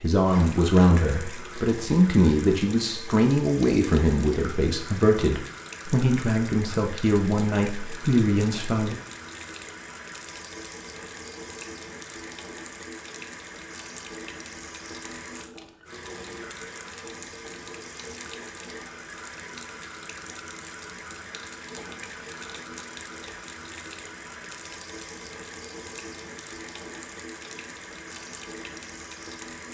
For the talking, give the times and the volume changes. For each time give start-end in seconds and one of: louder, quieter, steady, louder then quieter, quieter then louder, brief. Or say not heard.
0.0-8.9 steady.